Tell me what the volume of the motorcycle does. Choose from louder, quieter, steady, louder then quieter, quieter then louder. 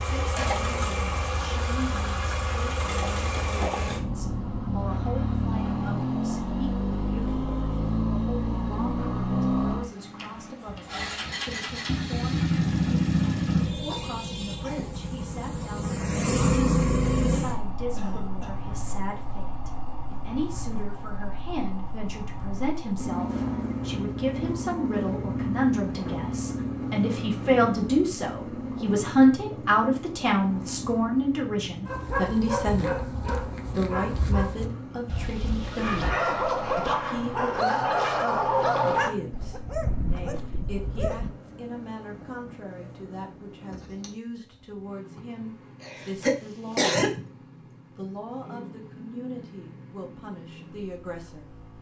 quieter.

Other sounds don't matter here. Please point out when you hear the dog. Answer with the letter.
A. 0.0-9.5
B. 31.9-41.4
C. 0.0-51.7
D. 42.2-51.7
B.